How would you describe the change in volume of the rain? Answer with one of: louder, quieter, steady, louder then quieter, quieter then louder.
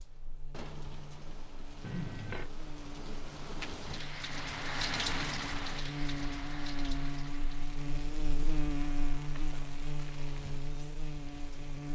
louder then quieter.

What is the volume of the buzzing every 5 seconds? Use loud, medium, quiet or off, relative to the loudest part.
medium, loud, loud.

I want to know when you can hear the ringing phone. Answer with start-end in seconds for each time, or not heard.
1.8-2.5.